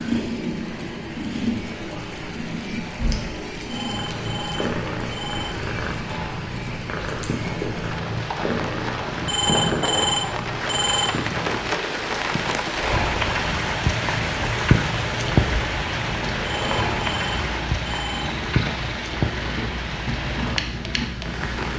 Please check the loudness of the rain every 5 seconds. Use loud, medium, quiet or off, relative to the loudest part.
medium, medium, loud, loud, medium.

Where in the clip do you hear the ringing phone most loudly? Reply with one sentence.
The volume of the ringing phone peaks at 10 seconds.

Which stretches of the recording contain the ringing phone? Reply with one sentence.
You can hear the ringing phone from 3.7 to 5.5 s, from 9.2 to 11.2 s and from 16.4 to 18.3 s.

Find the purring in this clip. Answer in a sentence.
The purring can be heard from 0.0 to 21.7 s.